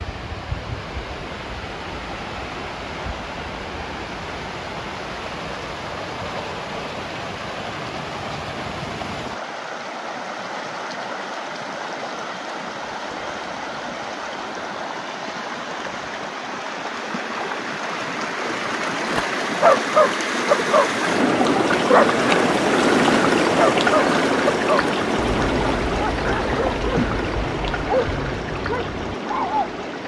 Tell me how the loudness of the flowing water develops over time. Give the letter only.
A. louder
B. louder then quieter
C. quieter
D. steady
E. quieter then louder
A.